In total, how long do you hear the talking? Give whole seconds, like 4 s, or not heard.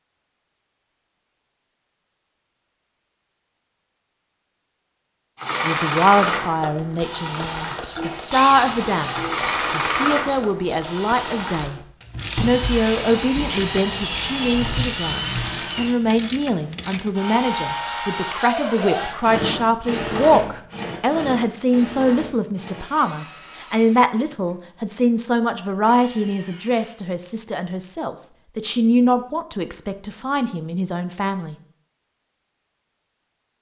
26 s.